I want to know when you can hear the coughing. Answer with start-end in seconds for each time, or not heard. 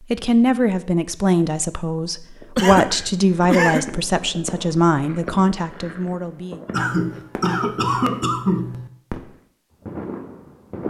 2.5-3.9, 6.7-8.9.